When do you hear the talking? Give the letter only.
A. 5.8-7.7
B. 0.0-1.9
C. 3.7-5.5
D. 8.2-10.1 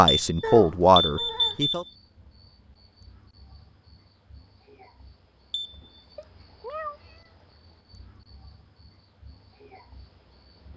B.